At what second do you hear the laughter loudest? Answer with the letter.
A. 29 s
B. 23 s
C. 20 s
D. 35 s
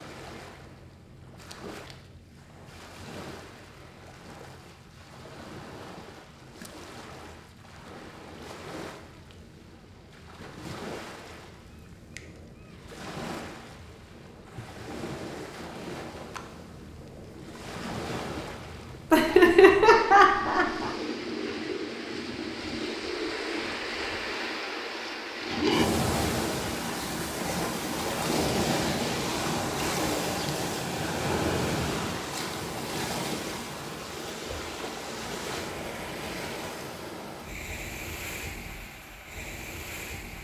C.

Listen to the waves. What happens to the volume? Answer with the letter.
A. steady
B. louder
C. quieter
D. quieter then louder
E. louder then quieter
E.